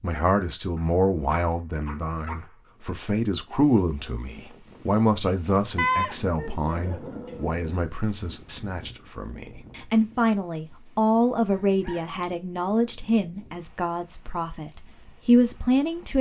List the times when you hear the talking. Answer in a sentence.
You can hear the talking from 0.0 to 16.1 s.